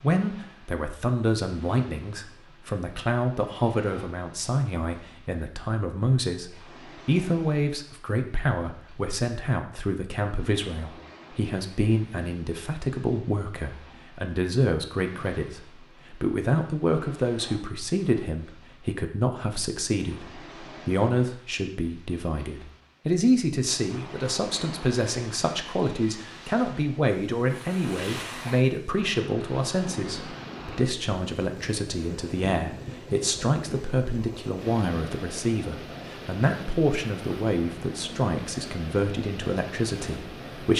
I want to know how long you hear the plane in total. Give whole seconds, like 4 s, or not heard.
not heard.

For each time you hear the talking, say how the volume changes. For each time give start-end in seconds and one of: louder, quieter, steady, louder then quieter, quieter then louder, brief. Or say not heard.
0.0-40.7 steady.